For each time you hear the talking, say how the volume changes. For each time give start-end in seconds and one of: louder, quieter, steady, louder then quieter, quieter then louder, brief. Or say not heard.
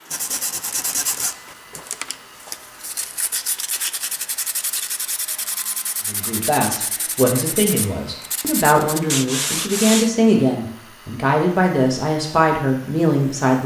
6.0-13.6 steady.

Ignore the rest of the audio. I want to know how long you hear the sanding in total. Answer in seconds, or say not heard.
10 s.